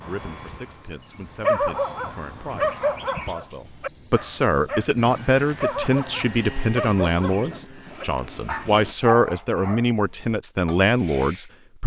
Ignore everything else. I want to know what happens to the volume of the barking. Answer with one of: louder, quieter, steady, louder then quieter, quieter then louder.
quieter.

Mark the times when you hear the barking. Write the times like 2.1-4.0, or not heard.
1.4-4.9, 5.6-11.4.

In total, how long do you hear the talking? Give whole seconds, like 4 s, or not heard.
12 s.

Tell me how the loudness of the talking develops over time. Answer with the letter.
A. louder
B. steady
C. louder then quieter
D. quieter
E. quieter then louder
A.